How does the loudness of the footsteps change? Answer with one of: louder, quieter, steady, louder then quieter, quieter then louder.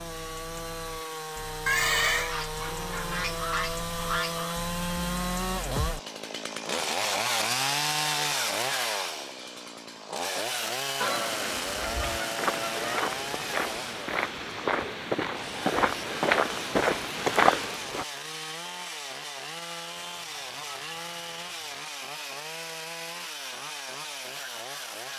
louder.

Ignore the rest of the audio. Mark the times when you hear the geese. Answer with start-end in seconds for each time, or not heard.
2.2-4.5, 11.0-13.0, 19.9-21.8.